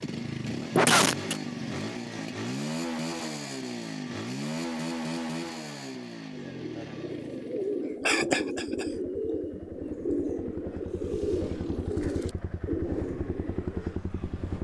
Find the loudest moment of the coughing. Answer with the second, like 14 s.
1 s.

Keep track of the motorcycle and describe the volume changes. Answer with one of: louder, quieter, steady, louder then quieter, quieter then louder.
quieter then louder.